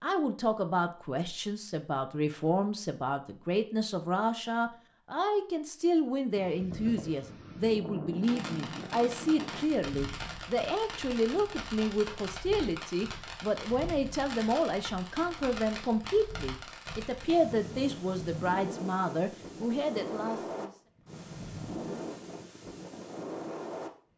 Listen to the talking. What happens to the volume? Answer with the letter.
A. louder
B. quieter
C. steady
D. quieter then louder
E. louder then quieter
C.